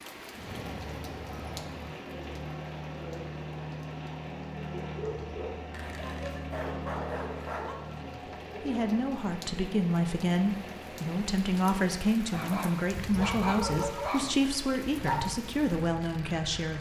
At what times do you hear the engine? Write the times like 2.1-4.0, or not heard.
0.0-16.7.